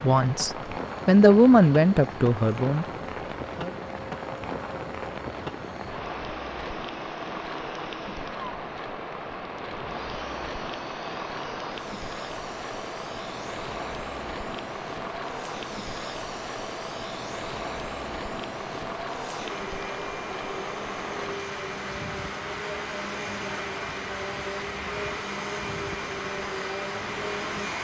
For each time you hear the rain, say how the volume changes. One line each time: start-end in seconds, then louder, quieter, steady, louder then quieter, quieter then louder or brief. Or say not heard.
0.0-27.7 steady.